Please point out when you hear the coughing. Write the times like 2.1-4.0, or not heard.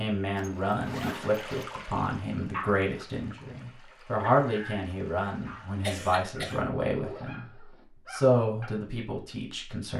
5.8-6.6.